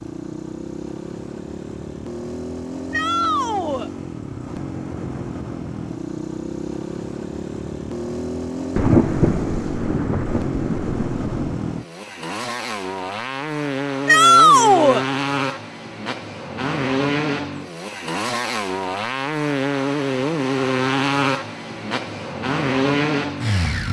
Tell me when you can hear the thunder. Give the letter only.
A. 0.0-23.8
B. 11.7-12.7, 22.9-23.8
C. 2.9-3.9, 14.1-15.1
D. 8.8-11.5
D.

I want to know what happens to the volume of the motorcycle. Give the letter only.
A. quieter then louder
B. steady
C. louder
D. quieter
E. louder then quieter
C.